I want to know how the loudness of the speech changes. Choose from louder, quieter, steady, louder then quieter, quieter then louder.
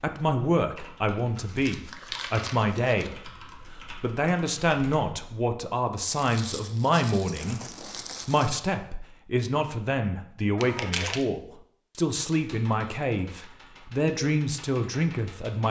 steady.